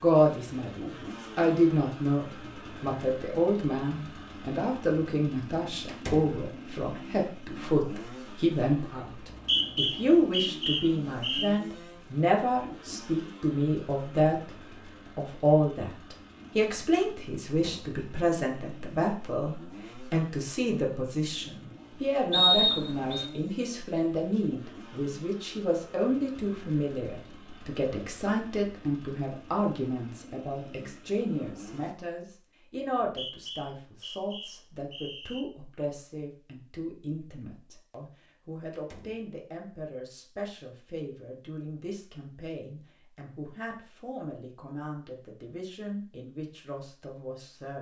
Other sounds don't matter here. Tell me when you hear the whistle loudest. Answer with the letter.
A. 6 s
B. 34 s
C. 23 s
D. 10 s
C.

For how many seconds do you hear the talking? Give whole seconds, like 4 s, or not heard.
47 s.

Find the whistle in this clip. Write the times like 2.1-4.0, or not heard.
9.1-11.5, 22.3-23.3, 33.0-35.5.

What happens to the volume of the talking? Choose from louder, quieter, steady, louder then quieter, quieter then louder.
quieter.